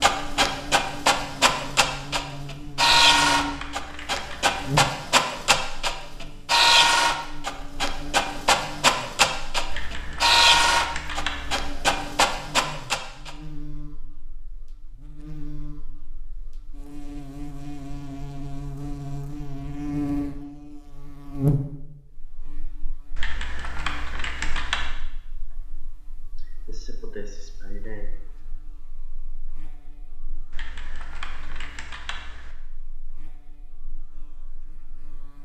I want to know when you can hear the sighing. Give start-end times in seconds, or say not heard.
26.4-28.1.